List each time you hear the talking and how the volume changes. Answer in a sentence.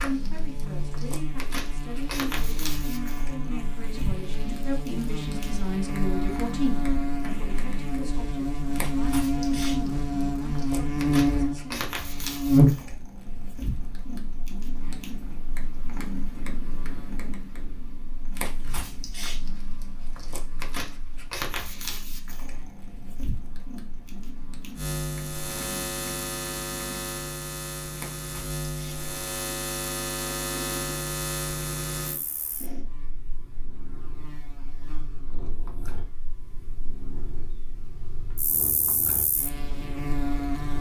You can hear the talking from 0.0 to 11.8 s, getting louder then quieter.